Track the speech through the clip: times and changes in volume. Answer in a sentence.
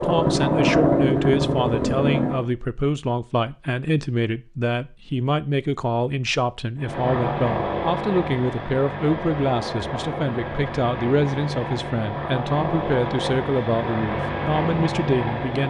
The speech can be heard from 0.0 to 15.6 s, at a steady volume.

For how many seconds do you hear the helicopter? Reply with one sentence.
You can hear the helicopter for 11 seconds altogether.